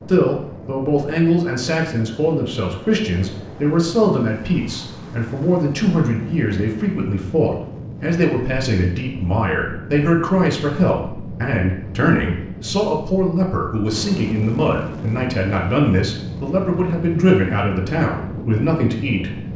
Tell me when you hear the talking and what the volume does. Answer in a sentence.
You can hear the talking from 0.0 to 19.5 s, at a steady volume.